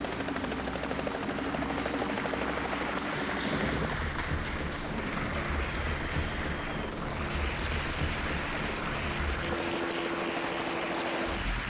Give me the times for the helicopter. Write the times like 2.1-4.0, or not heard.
0.0-11.6.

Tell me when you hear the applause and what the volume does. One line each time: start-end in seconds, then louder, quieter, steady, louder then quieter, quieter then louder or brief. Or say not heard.
0.0-11.6 steady.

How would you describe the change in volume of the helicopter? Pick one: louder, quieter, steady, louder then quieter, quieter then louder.
steady.